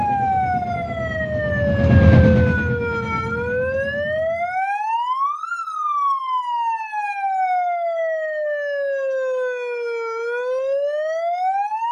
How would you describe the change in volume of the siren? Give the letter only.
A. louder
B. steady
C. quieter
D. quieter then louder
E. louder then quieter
B.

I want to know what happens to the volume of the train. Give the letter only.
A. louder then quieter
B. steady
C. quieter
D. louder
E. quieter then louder
A.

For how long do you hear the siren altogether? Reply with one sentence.
The siren can be heard for 12 seconds in total.